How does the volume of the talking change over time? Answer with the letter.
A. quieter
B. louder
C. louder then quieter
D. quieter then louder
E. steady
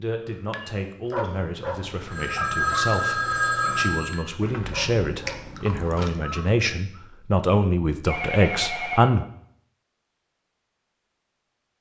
B.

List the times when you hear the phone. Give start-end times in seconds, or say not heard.
2.0-4.2, 8.1-9.0.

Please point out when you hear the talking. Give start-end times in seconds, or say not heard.
0.0-9.2.